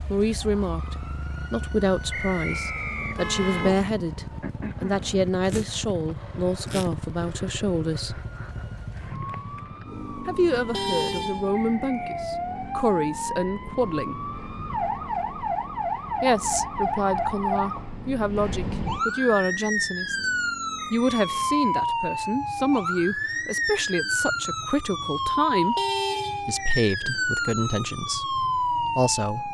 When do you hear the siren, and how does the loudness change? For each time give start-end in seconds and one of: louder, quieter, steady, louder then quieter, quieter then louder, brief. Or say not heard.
0.0-29.4 louder.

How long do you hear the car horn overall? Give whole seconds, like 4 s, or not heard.
4 s.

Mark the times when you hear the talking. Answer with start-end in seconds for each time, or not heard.
0.1-8.2, 10.2-14.2, 16.2-20.1, 20.9-25.8, 26.4-29.4.